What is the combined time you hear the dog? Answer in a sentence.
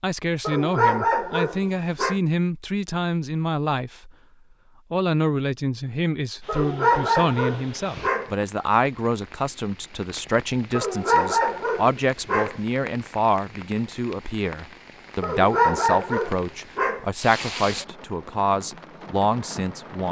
You can hear the dog for 7 seconds altogether.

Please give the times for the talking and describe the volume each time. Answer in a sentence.
The talking can be heard from 0.0 to 4.1 s, at a steady volume; and from 4.9 to 20.0 s, at a steady volume.